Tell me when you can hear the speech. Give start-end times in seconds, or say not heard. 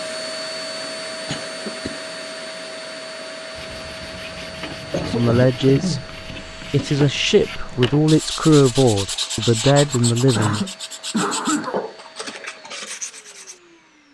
5.0-6.0, 6.7-10.7.